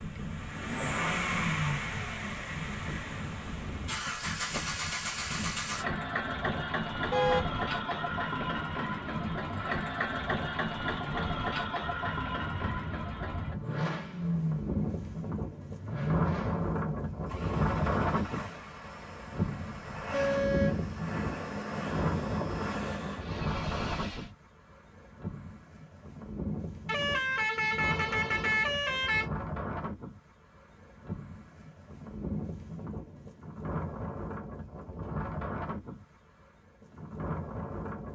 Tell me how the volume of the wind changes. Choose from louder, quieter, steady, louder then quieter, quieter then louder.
louder then quieter.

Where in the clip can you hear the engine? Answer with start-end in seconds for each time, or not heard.
0.0-24.3.